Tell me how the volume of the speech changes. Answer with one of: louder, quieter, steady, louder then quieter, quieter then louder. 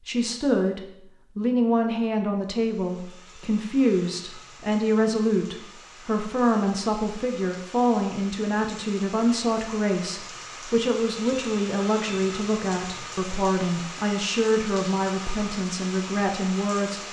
steady.